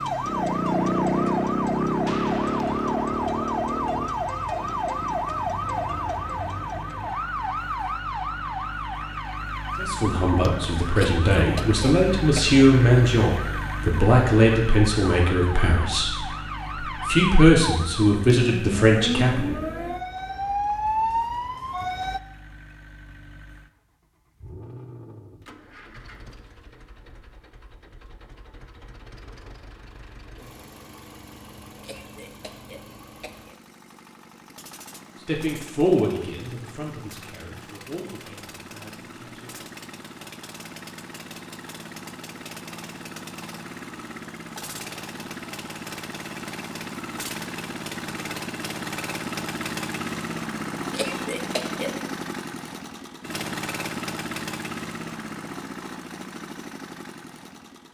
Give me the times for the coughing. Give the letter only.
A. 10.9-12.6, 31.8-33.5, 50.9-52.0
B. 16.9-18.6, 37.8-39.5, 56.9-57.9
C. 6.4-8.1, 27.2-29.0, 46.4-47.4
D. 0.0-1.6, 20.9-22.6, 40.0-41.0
A.